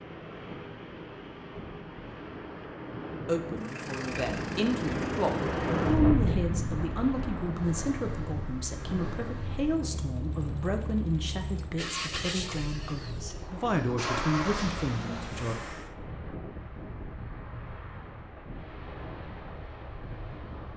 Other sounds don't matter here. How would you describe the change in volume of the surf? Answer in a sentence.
The loudness of the surf goes up, then down.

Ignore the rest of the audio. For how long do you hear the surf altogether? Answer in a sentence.
You can hear the surf for 21 seconds altogether.